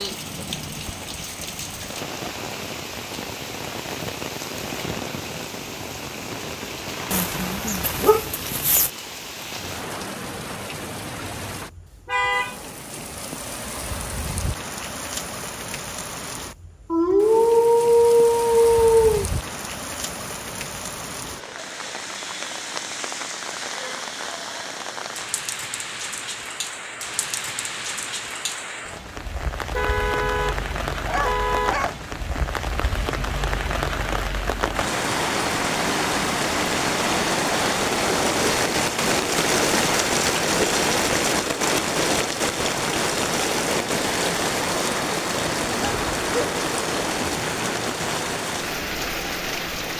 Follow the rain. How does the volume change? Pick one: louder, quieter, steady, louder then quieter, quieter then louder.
louder.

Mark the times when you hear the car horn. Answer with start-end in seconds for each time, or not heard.
12.1-12.6, 29.7-31.8.